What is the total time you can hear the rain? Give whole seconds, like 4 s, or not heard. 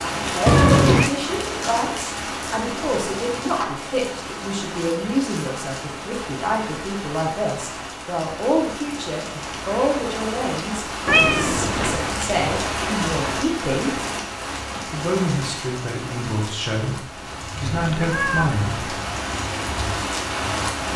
21 s.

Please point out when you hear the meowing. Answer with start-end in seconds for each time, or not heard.
0.5-1.1, 11.1-12.0, 17.7-18.6.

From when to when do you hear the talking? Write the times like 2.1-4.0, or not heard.
0.0-13.9, 14.9-18.9.